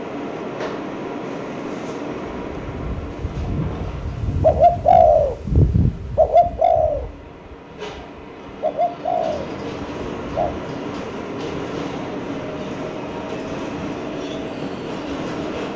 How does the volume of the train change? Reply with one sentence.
The loudness of the train goes down, then up.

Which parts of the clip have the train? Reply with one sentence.
You can hear the train from 0.0 to 15.7 s.